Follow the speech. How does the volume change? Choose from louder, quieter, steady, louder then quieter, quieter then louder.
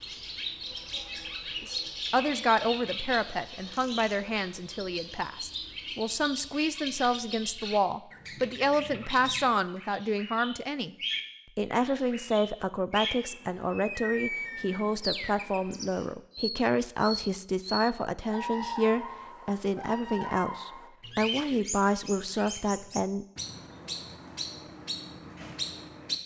steady.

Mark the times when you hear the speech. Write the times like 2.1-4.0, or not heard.
1.6-10.9, 11.6-23.2.